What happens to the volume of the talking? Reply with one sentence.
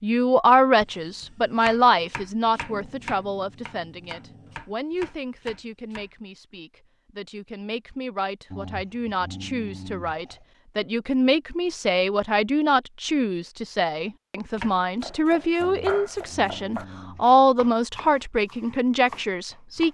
The volume of the talking goes down, then up.